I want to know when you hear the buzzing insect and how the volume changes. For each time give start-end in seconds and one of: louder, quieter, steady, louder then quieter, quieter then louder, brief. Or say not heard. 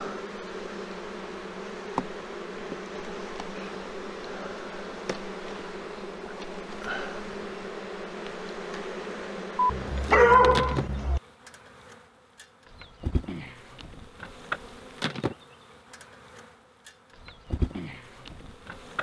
0.0-18.9 steady.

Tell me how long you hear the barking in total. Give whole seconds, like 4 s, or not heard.
2 s.